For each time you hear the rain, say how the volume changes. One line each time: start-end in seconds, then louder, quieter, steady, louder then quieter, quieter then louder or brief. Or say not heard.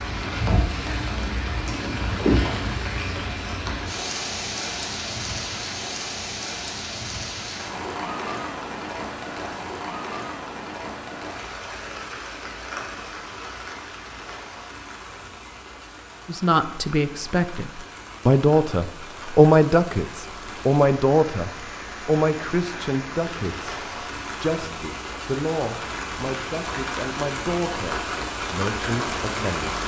0.0-29.8 quieter then louder.